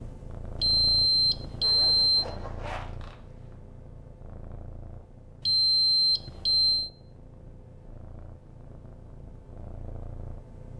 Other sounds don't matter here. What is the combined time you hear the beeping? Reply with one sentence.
You can hear the beeping for 3 seconds altogether.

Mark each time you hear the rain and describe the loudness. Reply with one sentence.
The rain can't be heard in this clip.